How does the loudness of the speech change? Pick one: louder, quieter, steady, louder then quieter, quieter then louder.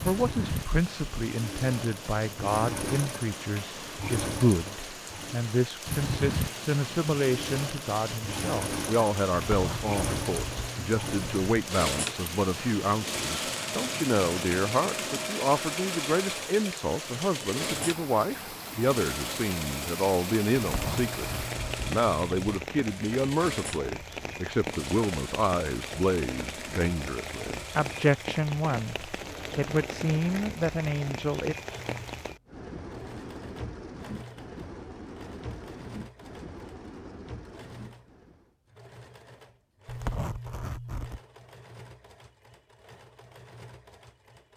steady.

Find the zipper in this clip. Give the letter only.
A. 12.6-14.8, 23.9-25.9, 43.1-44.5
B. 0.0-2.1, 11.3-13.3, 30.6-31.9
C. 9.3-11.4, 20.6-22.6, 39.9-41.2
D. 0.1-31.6
C.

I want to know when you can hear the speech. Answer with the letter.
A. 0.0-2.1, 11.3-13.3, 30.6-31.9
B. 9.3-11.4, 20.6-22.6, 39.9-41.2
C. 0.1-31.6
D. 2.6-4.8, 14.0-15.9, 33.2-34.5
C.